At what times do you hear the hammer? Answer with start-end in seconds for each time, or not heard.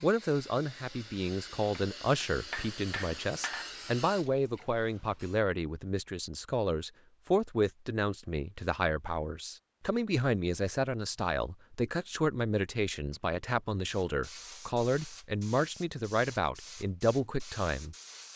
1.8-3.7.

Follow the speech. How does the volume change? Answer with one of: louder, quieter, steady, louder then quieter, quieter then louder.
steady.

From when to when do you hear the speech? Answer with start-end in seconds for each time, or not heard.
0.0-17.9.